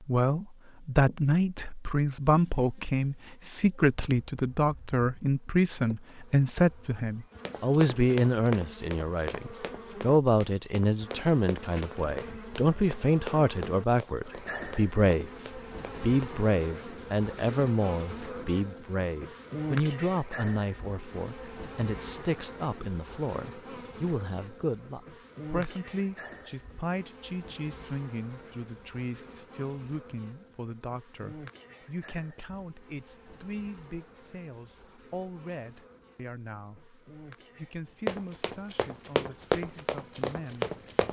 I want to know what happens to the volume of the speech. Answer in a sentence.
The loudness of the speech goes down.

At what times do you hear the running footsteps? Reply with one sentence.
The running footsteps can be heard from 7.5 to 16.2 s and from 38.0 to 41.0 s.